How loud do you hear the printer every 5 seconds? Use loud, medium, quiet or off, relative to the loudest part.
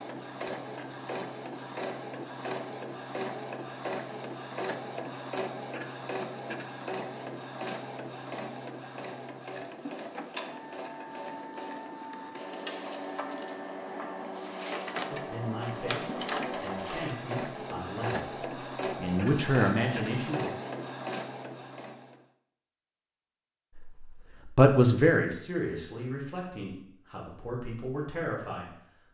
loud, loud, loud, loud, loud, off.